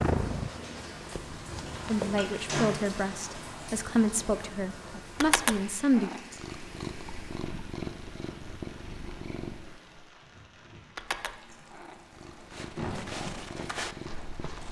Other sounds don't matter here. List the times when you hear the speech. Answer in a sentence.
You can hear the speech from 1.9 to 6.1 s.